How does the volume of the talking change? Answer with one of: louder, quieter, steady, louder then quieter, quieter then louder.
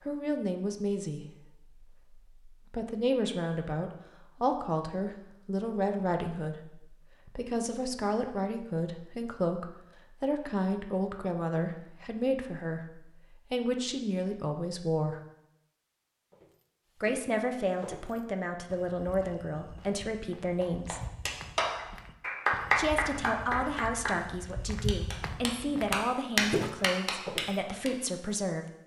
steady.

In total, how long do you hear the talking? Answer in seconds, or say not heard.
25 s.